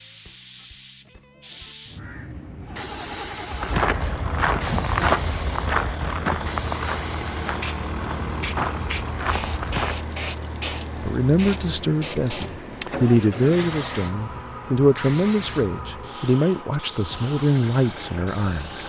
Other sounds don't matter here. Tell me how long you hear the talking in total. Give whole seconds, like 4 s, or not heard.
8 s.